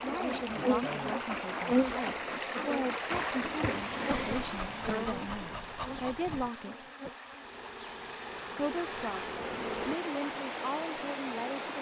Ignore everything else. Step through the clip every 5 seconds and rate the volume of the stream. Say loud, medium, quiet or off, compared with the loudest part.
loud, medium, loud.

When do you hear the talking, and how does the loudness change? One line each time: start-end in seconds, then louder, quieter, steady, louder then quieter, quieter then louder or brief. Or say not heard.
0.0-6.8 steady
8.6-9.2 brief
9.8-11.7 brief.